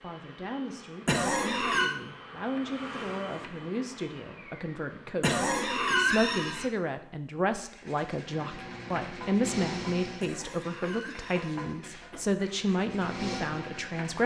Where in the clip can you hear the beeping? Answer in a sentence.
The beeping can't be heard in this clip.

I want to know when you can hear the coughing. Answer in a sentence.
The coughing can be heard from 1.1 to 1.9 s, from 5.2 to 6.7 s and from 10.2 to 12.3 s.